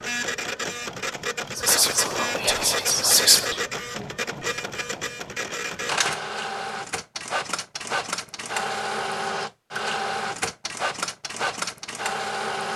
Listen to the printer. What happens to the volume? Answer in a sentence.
The loudness of the printer stays about the same.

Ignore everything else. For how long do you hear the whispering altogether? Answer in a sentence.
The whispering can be heard for 2 seconds in total.